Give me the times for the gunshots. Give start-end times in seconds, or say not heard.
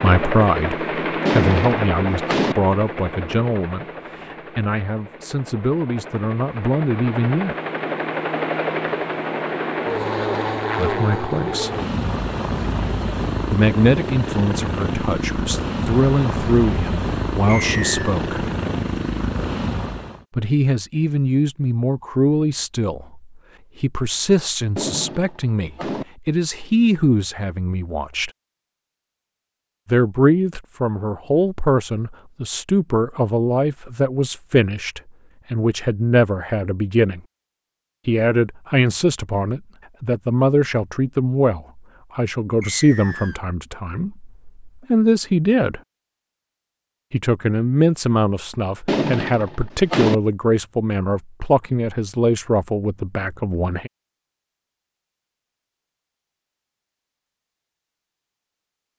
1.2-2.5, 24.8-26.1, 48.9-50.1.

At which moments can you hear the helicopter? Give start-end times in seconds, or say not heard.
0.0-20.2.